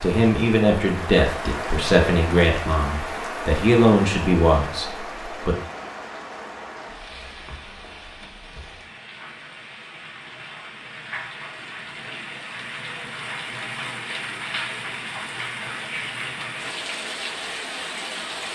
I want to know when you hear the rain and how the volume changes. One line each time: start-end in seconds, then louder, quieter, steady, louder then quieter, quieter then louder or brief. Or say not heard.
0.0-18.5 quieter then louder.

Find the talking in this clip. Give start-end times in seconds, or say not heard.
0.0-5.5.